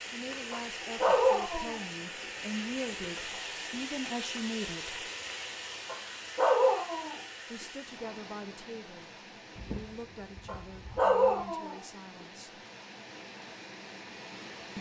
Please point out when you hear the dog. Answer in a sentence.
You can hear the dog from 0.5 to 1.9 s, from 5.8 to 7.2 s and from 10.4 to 11.8 s.